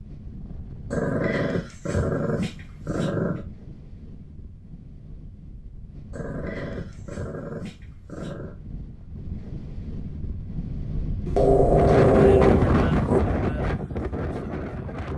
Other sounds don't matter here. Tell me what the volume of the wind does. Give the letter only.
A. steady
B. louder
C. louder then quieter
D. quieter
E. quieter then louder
B.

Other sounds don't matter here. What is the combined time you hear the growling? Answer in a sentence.
You can hear the growling for 7 seconds altogether.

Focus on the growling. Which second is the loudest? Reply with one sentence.
The loudest moment of the growling is at 12 seconds.